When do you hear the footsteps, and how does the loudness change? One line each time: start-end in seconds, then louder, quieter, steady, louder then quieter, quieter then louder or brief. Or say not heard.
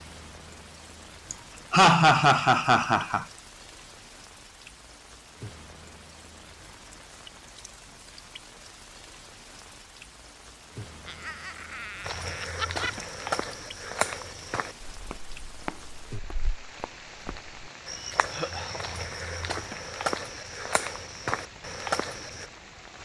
12.1-22.4 quieter then louder.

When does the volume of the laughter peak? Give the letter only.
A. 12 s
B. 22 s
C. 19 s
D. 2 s
D.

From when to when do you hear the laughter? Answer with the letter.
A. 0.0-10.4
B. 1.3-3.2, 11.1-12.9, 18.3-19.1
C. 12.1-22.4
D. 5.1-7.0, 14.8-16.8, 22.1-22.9
B.